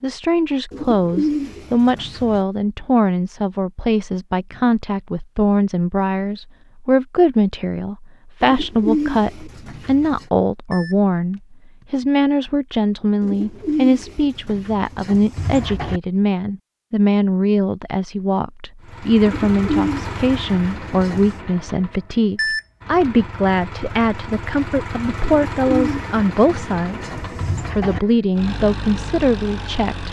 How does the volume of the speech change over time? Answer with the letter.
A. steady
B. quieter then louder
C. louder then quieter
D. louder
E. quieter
A.